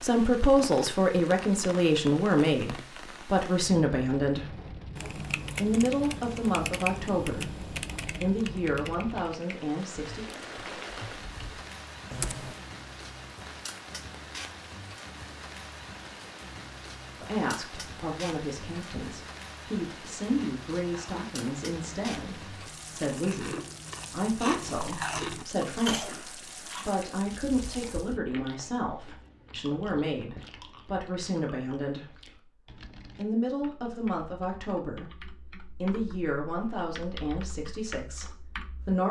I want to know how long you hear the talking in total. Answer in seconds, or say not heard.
30 s.